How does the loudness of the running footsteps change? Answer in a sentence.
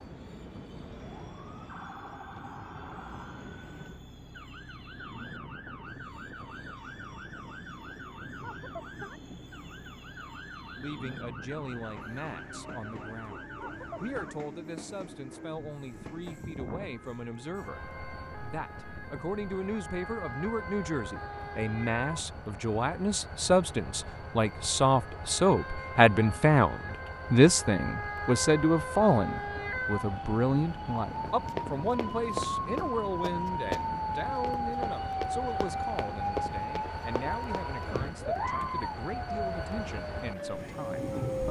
The volume of the running footsteps goes down.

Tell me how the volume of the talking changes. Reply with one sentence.
The loudness of the talking goes up, then down.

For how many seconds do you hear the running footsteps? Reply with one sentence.
You can hear the running footsteps for 7 seconds altogether.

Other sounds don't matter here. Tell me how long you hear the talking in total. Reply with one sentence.
You can hear the talking for 30 seconds altogether.